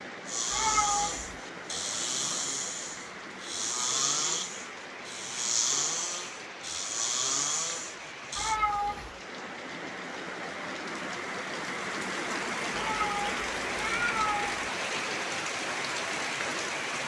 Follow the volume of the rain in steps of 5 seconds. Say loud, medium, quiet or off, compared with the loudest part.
medium, medium, loud, loud.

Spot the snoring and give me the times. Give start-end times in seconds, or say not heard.
0.2-8.6.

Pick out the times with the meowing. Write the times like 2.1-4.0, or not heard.
0.5-1.4, 8.3-9.1, 12.7-14.7.